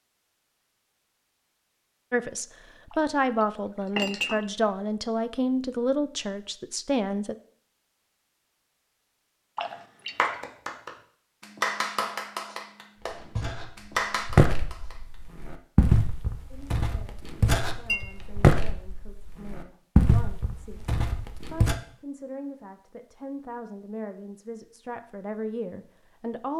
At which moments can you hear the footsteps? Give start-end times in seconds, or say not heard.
13.0-21.8.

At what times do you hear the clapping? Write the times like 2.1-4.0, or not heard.
10.2-15.2.